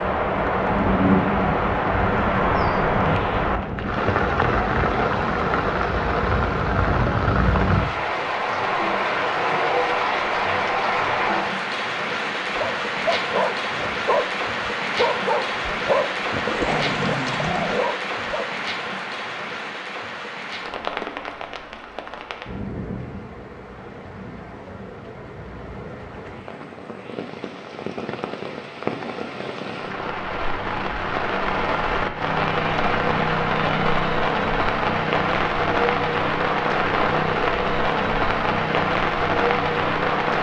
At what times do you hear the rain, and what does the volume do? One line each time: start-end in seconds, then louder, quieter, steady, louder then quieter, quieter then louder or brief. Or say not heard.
0.0-40.3 quieter then louder.